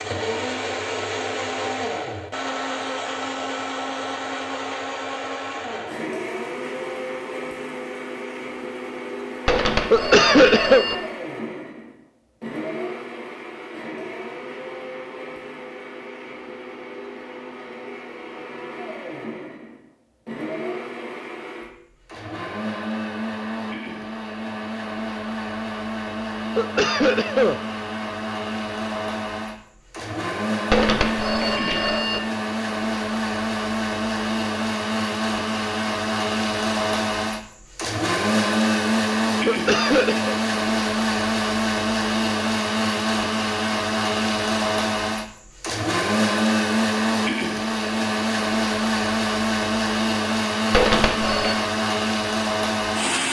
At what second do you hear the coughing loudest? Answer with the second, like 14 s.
10 s.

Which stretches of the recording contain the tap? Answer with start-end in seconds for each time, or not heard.
not heard.